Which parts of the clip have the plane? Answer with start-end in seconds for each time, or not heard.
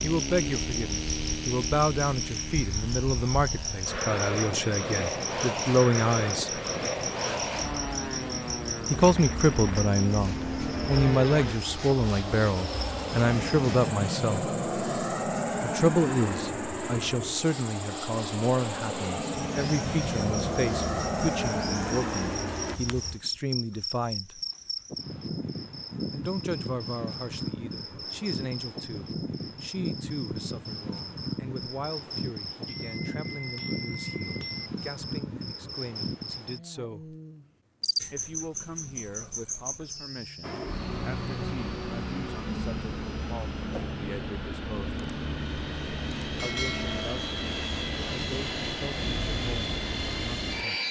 0.0-22.8, 40.4-50.8.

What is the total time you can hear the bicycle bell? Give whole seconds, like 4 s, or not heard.
2 s.